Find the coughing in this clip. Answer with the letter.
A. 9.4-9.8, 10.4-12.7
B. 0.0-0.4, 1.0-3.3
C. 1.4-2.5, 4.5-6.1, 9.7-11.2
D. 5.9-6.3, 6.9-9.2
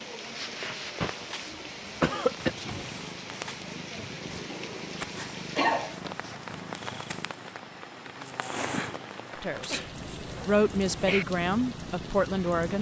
C.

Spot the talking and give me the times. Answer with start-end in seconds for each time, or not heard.
9.4-9.8, 10.4-12.7.